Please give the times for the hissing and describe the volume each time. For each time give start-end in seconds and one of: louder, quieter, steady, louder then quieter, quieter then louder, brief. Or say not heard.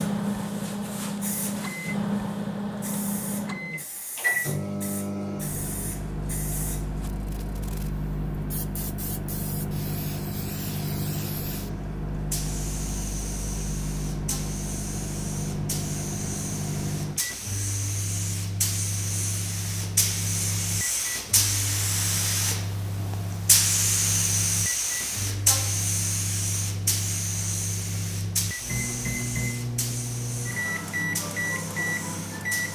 0.0-32.7 louder then quieter.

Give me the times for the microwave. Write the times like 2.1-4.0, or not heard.
0.0-32.7.